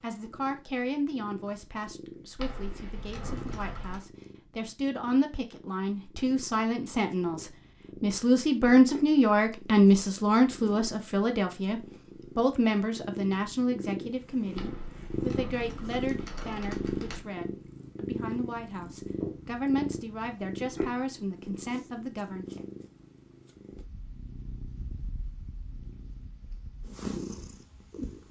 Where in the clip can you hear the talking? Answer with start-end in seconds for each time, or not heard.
0.0-22.4.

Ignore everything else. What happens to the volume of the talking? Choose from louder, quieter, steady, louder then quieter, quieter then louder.
louder then quieter.